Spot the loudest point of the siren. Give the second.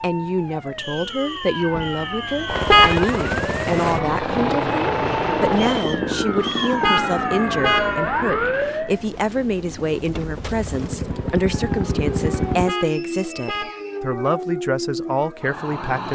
8 s.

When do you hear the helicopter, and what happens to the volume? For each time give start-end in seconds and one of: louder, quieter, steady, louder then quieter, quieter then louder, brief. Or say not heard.
2.5-12.8 quieter then louder.